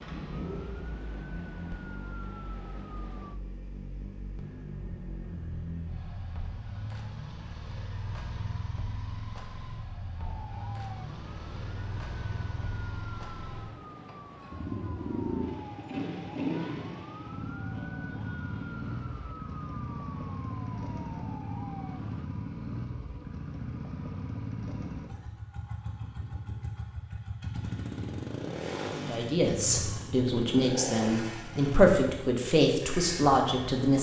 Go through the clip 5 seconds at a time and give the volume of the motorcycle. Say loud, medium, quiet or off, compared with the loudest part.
medium, medium, medium, loud, loud, loud, loud.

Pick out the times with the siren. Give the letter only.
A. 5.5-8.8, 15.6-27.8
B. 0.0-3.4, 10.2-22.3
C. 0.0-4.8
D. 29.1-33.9
B.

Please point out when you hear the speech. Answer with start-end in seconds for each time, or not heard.
29.1-33.9.